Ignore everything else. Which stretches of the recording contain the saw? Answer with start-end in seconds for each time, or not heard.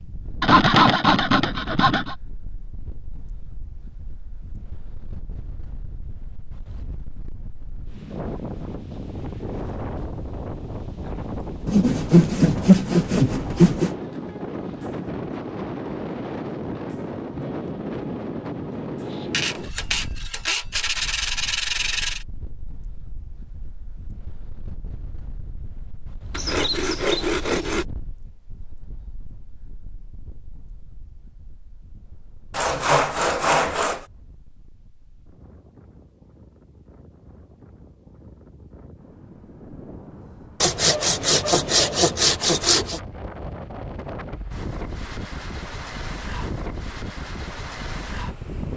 0.4-2.1, 11.7-13.9, 19.3-22.2, 26.3-27.9, 32.5-34.0, 40.6-43.0.